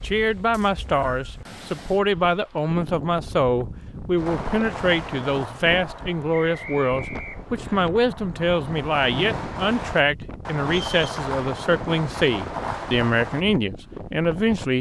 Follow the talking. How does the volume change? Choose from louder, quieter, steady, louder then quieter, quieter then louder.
steady.